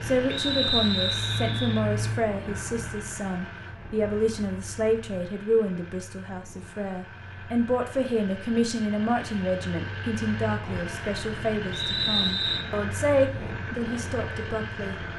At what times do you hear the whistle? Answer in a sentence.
You can hear the whistle from 0.3 to 1.8 s and from 11.7 to 12.7 s.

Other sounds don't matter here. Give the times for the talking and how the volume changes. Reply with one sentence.
You can hear the talking from 0.0 to 14.9 s, at a steady volume.